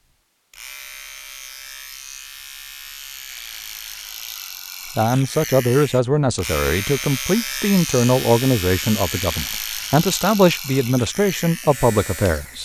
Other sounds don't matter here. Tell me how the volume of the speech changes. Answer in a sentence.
The volume of the speech stays about the same.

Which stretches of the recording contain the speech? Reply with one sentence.
The speech can be heard from 5.0 to 12.5 s.